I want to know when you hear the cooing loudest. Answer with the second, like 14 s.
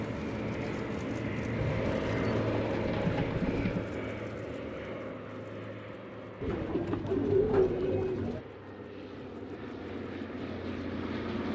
7 s.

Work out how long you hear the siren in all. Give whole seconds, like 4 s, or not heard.
not heard.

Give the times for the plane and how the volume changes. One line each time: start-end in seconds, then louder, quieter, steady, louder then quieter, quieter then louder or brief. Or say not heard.
0.0-11.5 quieter then louder.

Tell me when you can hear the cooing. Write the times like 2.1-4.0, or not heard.
1.6-3.9, 6.4-8.4.